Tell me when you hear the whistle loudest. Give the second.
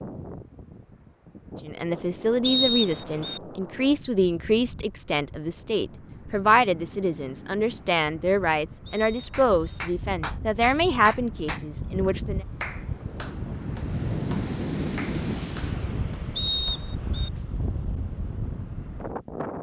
3 s.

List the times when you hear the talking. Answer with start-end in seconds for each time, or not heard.
1.6-12.4.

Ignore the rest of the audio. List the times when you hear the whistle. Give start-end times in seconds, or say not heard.
2.4-3.4, 8.8-9.8, 16.4-17.3.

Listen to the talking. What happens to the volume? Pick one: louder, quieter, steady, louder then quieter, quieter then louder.
steady.